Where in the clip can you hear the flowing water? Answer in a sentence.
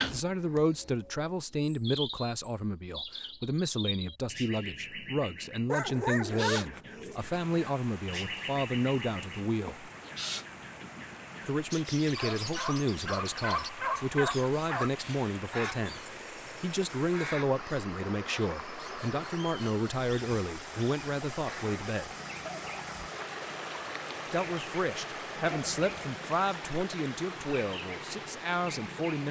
You can hear the flowing water from 7.1 to 29.2 s.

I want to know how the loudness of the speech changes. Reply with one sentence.
The loudness of the speech stays about the same.